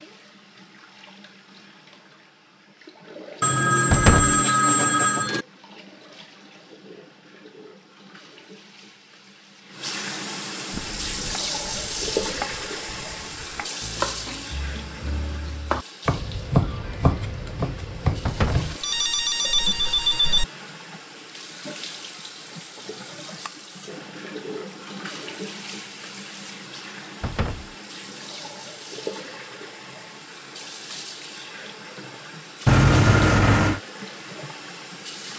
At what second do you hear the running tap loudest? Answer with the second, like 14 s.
12 s.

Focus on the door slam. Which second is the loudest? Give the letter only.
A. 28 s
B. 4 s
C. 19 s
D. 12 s
B.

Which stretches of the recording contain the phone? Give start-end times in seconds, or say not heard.
3.4-5.5, 18.8-20.4, 32.6-33.8.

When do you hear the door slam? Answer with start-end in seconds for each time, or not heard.
3.9-4.4, 18.2-18.7, 27.2-27.7.